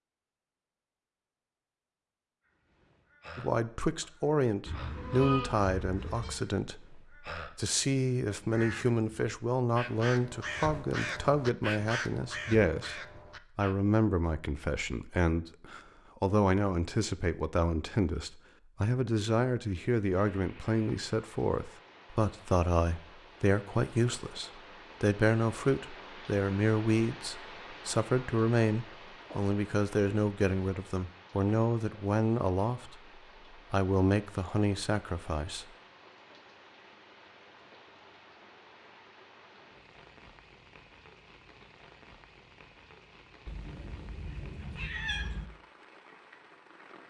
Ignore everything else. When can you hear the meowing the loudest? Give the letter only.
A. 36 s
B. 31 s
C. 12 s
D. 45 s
D.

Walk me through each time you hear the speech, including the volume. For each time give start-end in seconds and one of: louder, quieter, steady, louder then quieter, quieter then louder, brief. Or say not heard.
3.4-35.6 steady.